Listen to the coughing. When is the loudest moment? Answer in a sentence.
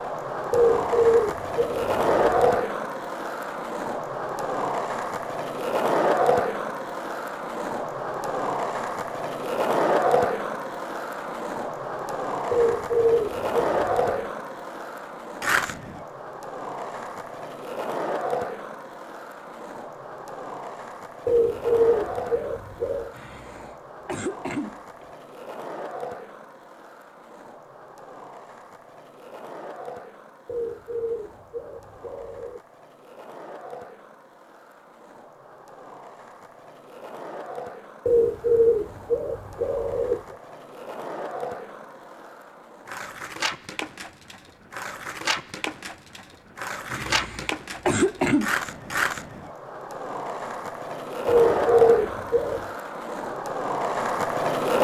The loudest moment of the coughing is at 48 seconds.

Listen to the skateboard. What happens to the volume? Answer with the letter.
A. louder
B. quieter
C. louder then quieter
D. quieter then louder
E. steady
D.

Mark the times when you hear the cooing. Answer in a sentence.
The cooing can be heard from 0.5 to 2.4 s, from 12.5 to 14.3 s, from 21.2 to 23.1 s, from 30.4 to 32.6 s, from 38.0 to 40.4 s and from 51.2 to 52.6 s.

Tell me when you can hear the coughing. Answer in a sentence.
The coughing can be heard from 23.1 to 25.1 s and from 46.9 to 48.5 s.